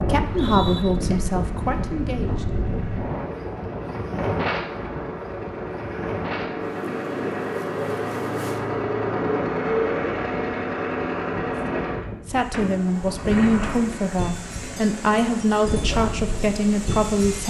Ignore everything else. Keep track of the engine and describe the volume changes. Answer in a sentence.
The volume of the engine goes up, then down.